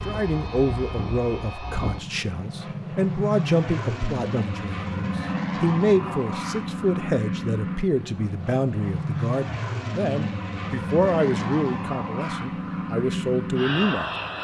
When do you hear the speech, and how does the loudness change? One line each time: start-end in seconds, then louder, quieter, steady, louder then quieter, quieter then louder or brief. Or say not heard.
0.1-14.1 steady.